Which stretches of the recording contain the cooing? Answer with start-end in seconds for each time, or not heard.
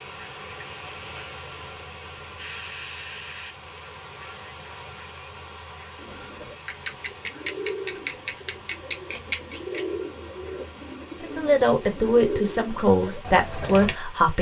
6.0-13.9.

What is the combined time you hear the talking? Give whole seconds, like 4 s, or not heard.
3 s.